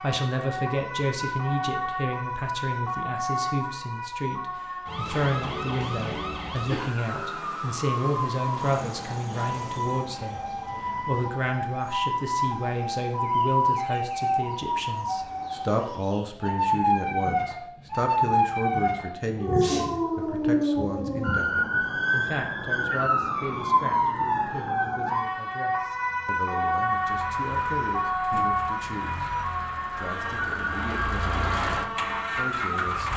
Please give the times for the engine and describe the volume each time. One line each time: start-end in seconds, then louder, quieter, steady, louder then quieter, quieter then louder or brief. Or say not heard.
26.8-33.1 louder.